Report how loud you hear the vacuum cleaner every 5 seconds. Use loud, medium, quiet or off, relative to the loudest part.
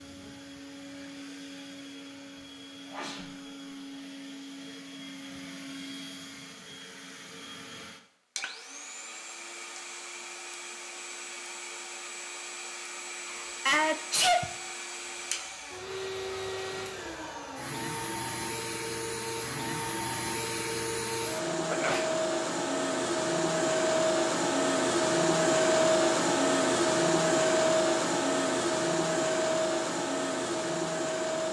quiet, quiet, quiet, medium, loud, loud, medium.